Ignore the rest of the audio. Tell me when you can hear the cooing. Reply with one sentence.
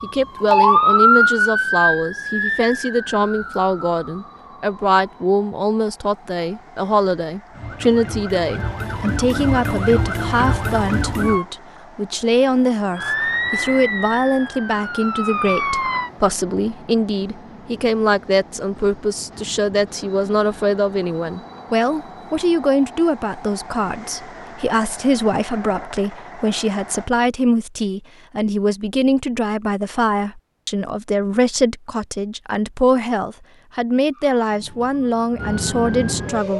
You can't hear the cooing here.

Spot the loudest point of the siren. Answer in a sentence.
The volume of the siren peaks at 1 second.